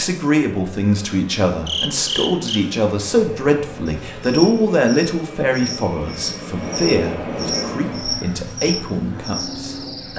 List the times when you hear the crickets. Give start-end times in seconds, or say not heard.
1.6-10.1.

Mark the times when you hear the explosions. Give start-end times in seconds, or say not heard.
6.5-8.0.